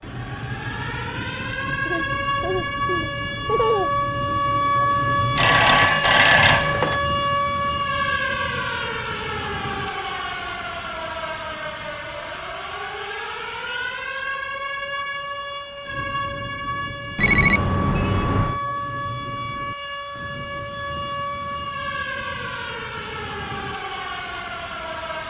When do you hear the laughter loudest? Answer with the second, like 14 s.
4 s.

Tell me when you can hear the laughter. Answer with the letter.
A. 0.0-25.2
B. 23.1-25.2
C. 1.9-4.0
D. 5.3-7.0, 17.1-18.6
C.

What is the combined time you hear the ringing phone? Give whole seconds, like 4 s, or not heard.
3 s.